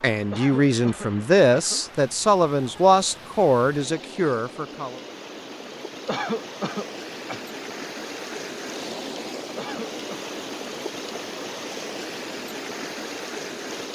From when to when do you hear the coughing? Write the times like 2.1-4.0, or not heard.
0.3-1.9, 6.0-7.5, 9.6-10.2.